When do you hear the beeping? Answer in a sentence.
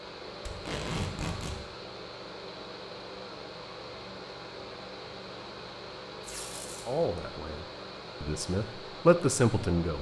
The beeping can't be heard in this clip.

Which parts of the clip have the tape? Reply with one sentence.
The tape can be heard from 0.5 to 1.6 s and from 6.2 to 7.2 s.